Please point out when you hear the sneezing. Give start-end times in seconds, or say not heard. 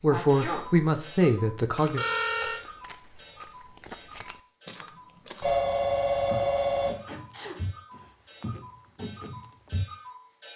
0.1-0.7, 6.8-7.6.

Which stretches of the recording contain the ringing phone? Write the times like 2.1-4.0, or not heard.
1.9-2.6, 5.4-6.9.